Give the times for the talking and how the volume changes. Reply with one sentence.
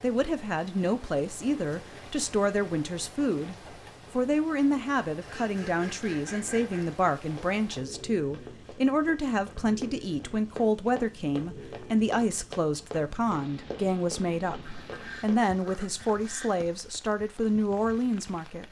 You can hear the talking from 0.0 to 18.6 s, at a steady volume.